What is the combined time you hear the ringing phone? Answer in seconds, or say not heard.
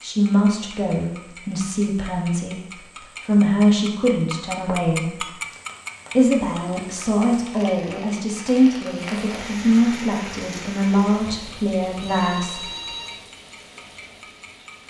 2 s.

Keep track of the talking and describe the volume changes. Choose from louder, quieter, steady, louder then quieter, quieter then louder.
steady.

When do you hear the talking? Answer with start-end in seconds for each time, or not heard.
0.0-5.0, 6.2-12.7.